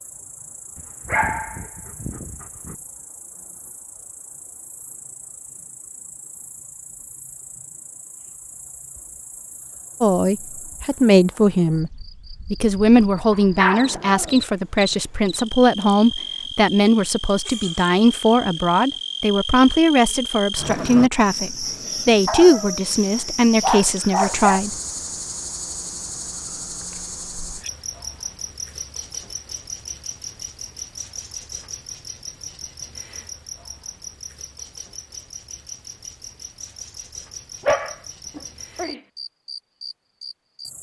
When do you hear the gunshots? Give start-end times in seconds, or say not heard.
not heard.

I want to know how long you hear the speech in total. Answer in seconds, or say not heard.
14 s.